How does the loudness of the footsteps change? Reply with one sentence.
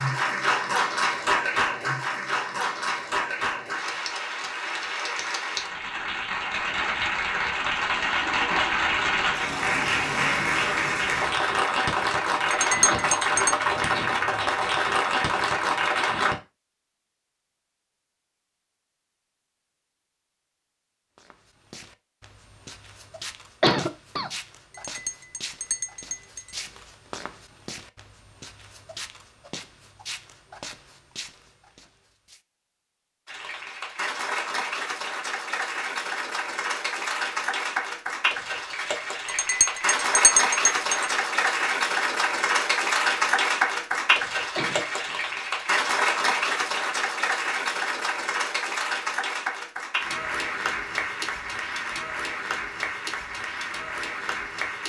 The volume of the footsteps stays about the same.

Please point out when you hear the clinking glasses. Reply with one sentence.
You can hear the clinking glasses from 12.5 to 13.6 s, from 24.9 to 26.6 s and from 39.2 to 41.1 s.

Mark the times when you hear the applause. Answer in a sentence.
The applause can be heard from 0.0 to 16.4 s and from 33.2 to 54.8 s.